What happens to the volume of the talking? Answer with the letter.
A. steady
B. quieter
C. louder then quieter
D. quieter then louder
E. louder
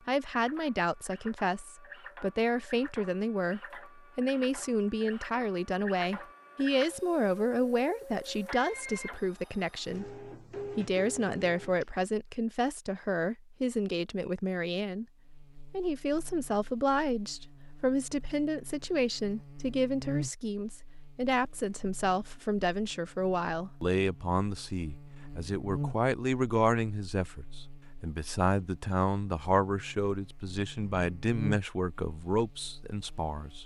A.